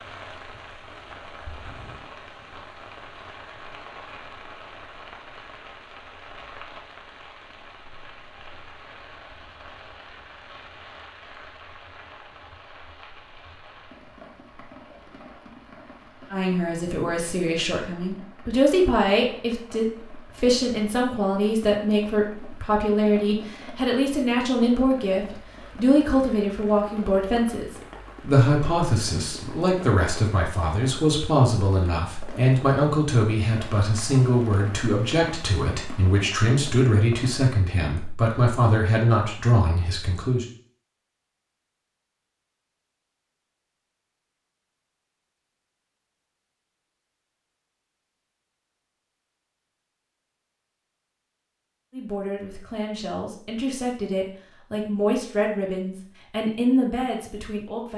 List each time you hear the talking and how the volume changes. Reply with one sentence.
The talking can be heard from 16.3 to 40.5 s, at a steady volume; and from 51.9 to 57.9 s, getting louder.